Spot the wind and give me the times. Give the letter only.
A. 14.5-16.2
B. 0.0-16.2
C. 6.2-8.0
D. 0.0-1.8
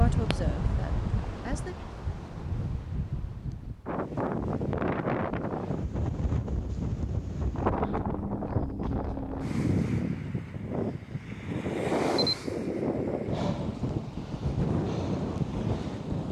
B.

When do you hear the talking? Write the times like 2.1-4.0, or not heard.
0.0-1.8.